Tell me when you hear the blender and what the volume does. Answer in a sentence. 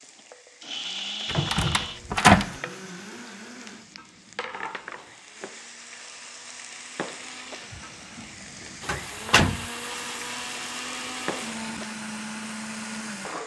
The blender can be heard from 0.0 to 13.4 s, getting quieter then louder.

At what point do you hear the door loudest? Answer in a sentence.
The volume of the door peaks at 2 seconds.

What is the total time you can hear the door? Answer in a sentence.
You can hear the door for 2 seconds altogether.